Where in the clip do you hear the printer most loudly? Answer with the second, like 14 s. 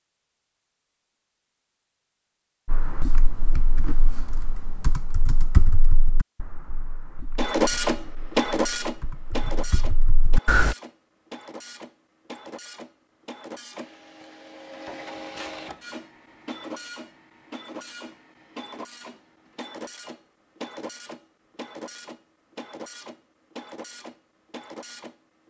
8 s.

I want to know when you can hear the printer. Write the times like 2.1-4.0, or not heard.
7.3-25.1.